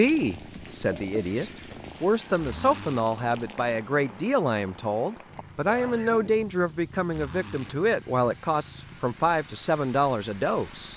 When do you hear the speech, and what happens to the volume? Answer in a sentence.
The speech can be heard from 0.0 to 10.9 s, at a steady volume.